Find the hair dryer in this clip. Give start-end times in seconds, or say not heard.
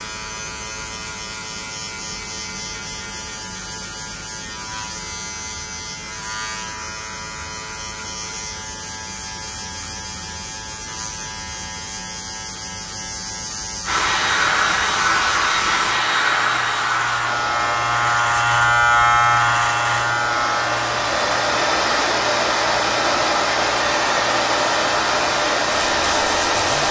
13.8-26.8.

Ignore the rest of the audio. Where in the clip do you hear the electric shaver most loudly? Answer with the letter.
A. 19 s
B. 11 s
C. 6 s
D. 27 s
A.